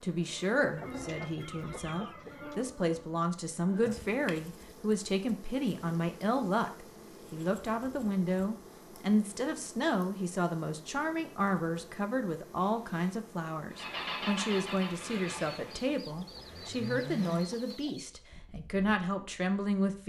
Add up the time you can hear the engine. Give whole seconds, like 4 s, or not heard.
4 s.